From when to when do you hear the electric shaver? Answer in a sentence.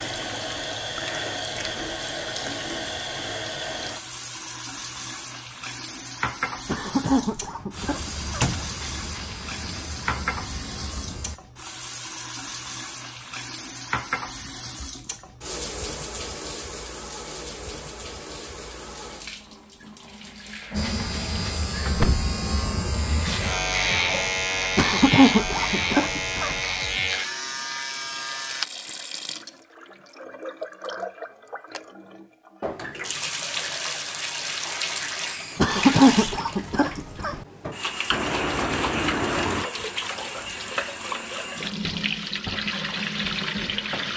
You can hear the electric shaver from 7.8 to 11.4 s and from 20.7 to 28.6 s.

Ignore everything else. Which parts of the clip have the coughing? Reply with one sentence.
The coughing can be heard from 6.7 to 8.5 s, from 24.8 to 26.6 s and from 35.5 to 37.4 s.